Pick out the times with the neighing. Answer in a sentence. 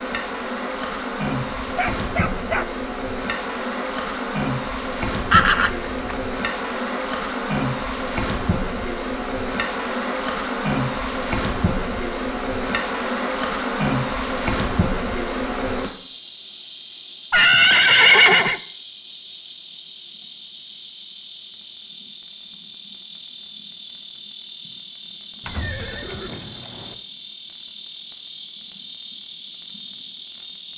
You can hear the neighing from 5.3 to 6.2 s, from 17.3 to 18.6 s and from 25.4 to 26.9 s.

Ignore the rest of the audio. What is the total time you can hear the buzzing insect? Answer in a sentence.
The buzzing insect can be heard for 31 seconds in total.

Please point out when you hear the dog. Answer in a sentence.
The dog can be heard from 1.6 to 2.6 s.